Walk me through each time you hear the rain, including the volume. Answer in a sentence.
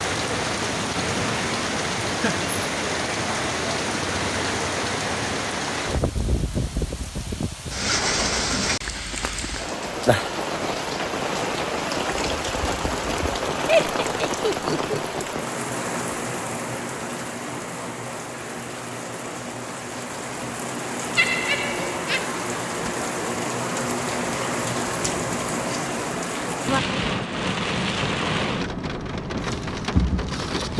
The rain can be heard from 0.0 to 30.7 s, at a steady volume.